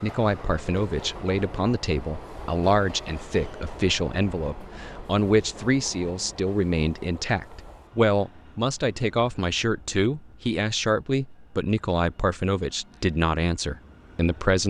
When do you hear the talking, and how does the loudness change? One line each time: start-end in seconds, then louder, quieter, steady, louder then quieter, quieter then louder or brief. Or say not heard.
0.0-14.6 steady.